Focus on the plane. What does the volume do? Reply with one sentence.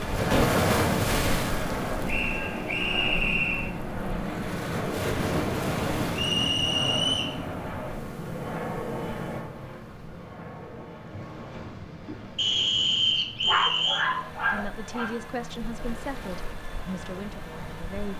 The volume of the plane goes down.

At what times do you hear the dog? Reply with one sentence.
The dog can be heard from 13.4 to 15.2 s.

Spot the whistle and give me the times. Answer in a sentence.
You can hear the whistle from 2.0 to 3.7 s, from 6.2 to 7.3 s and from 12.3 to 14.1 s.